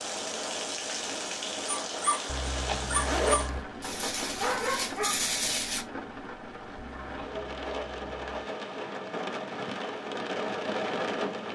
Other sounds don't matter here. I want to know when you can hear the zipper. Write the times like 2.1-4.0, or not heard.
2.2-3.6, 6.8-8.4.